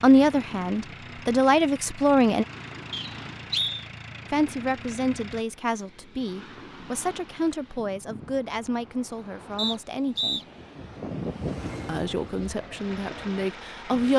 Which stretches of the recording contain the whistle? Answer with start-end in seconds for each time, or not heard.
2.9-3.9, 9.6-10.4.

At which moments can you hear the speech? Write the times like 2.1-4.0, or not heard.
0.0-2.5, 4.3-10.4, 11.8-14.1.